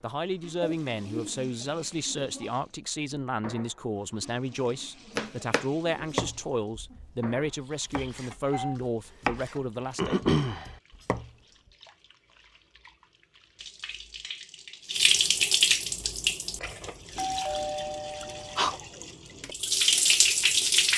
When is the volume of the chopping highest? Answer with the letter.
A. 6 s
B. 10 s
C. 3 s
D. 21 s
B.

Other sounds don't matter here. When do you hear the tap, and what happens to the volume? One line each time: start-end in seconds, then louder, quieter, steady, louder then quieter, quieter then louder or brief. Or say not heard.
0.1-20.9 quieter then louder.